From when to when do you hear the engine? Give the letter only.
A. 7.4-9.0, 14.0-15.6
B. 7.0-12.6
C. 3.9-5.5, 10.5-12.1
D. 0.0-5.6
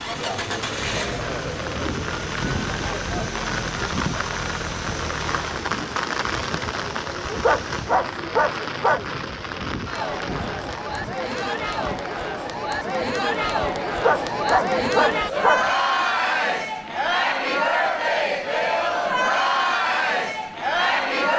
D.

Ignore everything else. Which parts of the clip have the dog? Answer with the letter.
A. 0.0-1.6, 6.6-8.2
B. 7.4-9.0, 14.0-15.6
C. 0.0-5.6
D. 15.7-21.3
B.